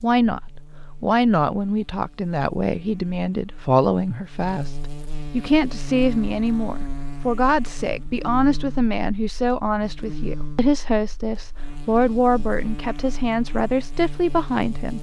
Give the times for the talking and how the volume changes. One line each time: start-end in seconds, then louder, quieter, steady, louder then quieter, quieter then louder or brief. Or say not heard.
0.0-0.4 brief
1.0-14.9 steady.